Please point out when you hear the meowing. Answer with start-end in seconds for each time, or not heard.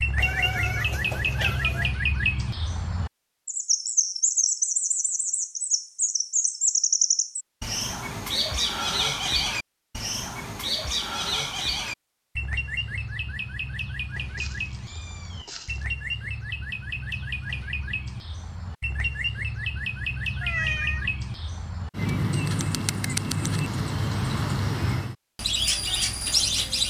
0.1-1.9, 14.2-15.8, 20.4-21.1.